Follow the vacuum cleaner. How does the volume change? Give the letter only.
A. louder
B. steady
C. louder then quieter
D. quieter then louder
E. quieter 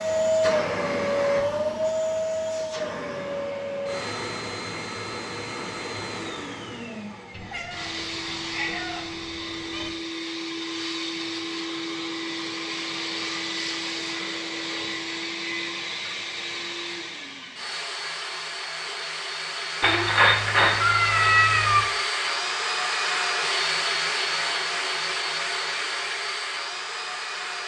D.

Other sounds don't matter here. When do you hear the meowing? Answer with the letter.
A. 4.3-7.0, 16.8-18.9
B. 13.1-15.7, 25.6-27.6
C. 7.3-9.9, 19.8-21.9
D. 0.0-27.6
C.